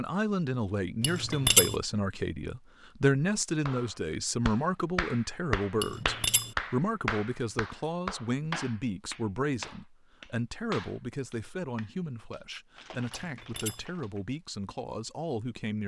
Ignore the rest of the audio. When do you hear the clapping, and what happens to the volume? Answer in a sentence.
You can hear the clapping from 3.6 to 14.2 s, getting quieter.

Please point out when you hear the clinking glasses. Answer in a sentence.
The clinking glasses can be heard from 1.0 to 1.8 s, from 5.8 to 6.5 s and from 13.1 to 13.8 s.